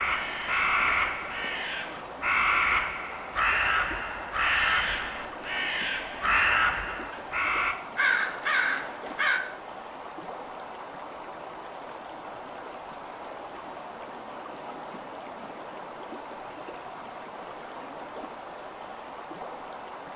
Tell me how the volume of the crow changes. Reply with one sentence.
The volume of the crow stays about the same.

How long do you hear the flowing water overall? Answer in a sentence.
You can hear the flowing water for 20 seconds altogether.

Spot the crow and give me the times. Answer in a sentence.
You can hear the crow from 0.0 to 9.4 s.